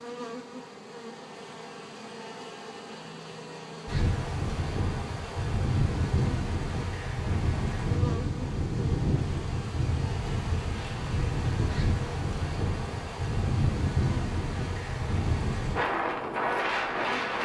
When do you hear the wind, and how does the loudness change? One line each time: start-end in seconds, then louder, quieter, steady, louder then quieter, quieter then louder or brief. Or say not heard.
3.9-17.4 steady.